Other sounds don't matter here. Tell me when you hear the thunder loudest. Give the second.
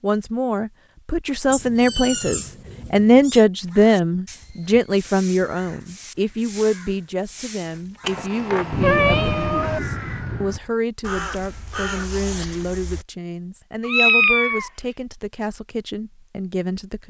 9 s.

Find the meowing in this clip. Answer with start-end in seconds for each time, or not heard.
1.5-3.4, 8.0-9.8, 13.8-14.7.